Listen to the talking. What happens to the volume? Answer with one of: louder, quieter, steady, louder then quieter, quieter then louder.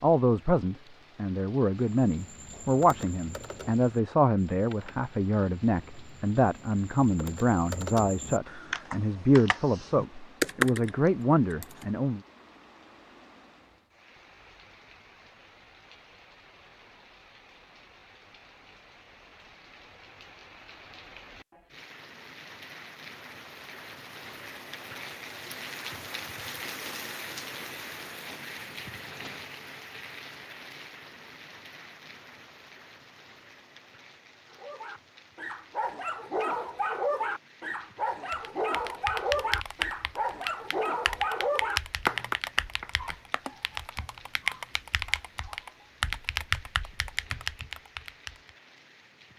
steady.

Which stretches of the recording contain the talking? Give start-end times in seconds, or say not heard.
0.0-12.2.